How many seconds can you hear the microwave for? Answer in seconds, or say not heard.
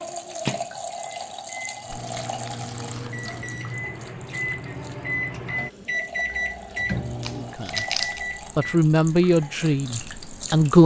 9 s.